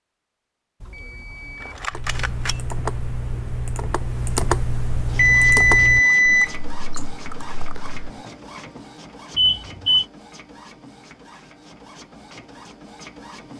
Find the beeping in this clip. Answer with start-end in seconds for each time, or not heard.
0.8-2.5, 5.2-7.0, 9.3-10.1.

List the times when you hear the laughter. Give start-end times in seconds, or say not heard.
not heard.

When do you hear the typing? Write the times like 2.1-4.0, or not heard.
1.9-8.1.